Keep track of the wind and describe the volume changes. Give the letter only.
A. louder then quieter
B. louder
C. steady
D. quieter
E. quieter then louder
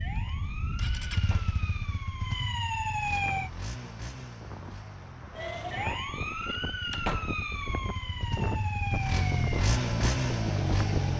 B.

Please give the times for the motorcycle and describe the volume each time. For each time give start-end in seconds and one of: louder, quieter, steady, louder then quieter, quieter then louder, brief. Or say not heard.
0.0-11.1 quieter then louder.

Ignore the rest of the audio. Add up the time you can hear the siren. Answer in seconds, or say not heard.
9 s.